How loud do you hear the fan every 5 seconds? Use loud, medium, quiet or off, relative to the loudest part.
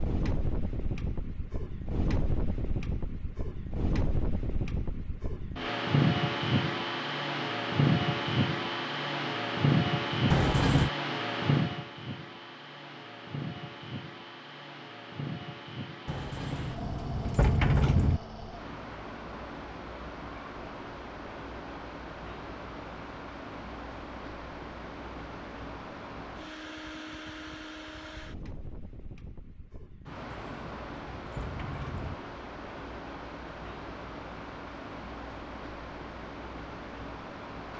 medium, loud, medium, quiet, quiet, quiet, quiet, quiet.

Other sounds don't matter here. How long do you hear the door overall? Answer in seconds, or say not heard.
5 s.